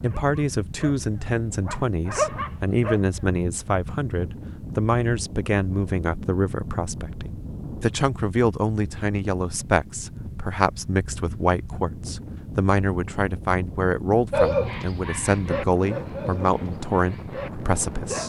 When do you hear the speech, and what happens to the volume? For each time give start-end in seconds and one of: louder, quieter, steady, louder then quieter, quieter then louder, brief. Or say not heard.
0.0-18.2 steady.